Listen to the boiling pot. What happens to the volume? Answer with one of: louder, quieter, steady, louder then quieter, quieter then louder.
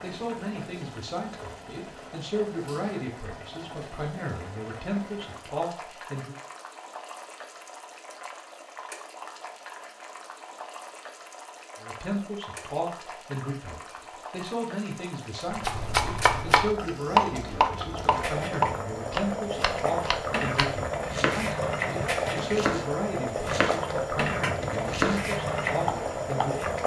louder.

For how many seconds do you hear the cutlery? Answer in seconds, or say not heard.
not heard.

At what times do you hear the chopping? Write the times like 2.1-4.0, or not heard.
15.5-26.6.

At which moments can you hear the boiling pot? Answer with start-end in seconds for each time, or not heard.
0.0-26.8.